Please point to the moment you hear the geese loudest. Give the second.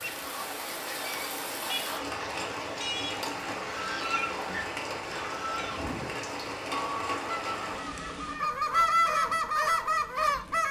9 s.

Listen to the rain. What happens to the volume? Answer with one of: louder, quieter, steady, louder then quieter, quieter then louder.
quieter.